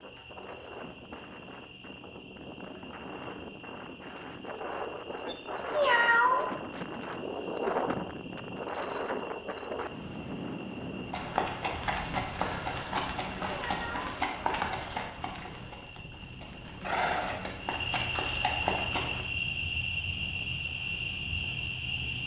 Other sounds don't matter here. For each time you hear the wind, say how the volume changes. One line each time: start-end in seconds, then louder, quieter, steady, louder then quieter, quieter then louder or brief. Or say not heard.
0.0-22.2 louder then quieter.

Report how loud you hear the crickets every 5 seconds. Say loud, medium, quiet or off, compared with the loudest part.
quiet, quiet, quiet, loud, loud.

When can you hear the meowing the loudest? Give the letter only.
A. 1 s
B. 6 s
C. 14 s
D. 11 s
B.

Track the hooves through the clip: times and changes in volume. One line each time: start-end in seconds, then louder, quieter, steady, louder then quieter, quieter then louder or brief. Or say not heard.
11.1-19.2 steady.